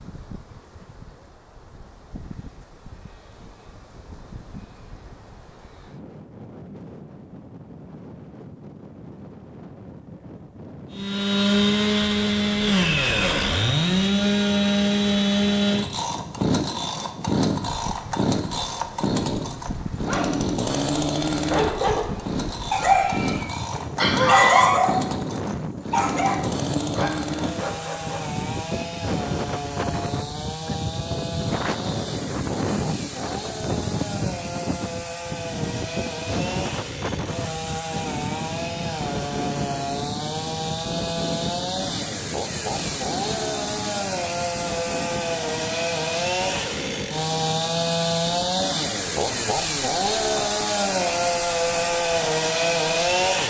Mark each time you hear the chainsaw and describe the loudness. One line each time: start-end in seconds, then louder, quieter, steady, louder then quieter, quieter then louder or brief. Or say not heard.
10.9-53.4 quieter then louder.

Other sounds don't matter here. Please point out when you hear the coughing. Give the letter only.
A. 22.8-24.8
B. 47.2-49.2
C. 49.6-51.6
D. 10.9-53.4
A.